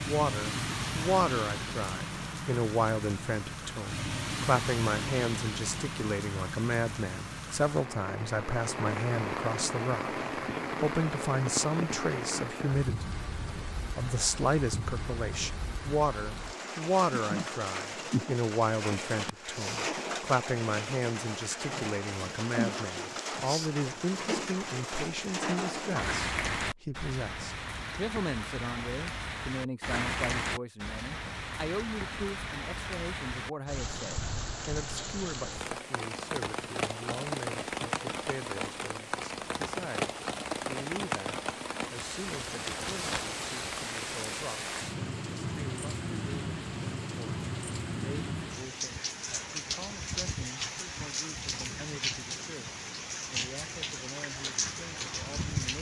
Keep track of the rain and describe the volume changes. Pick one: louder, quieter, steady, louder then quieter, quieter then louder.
steady.